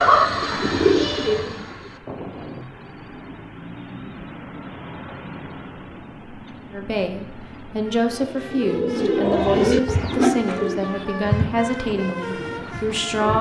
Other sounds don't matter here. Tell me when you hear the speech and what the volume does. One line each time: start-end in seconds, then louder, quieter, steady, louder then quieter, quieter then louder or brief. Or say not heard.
6.7-13.3 steady.